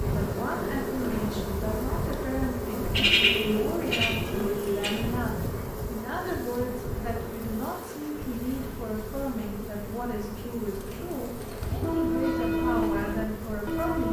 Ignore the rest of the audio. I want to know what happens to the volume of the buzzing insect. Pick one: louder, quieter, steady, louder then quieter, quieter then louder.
quieter.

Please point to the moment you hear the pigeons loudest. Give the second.
3 s.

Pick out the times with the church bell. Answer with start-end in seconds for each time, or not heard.
11.8-14.0.